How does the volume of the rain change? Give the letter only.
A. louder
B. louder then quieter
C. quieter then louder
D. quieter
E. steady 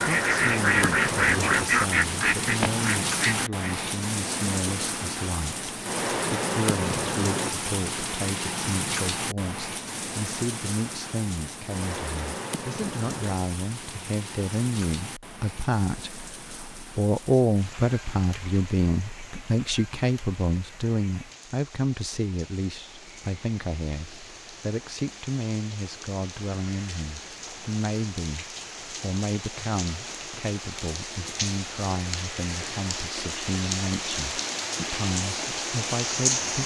C.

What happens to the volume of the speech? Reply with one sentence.
The loudness of the speech goes up, then down.